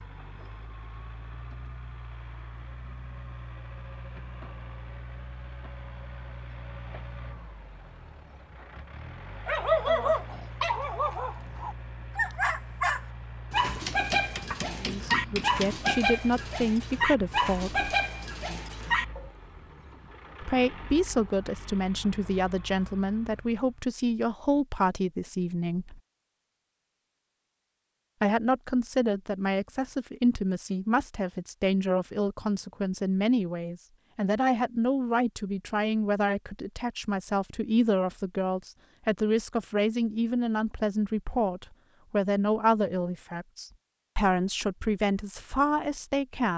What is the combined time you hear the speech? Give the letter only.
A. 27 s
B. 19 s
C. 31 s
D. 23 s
A.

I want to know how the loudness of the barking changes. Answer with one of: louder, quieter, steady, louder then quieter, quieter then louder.
steady.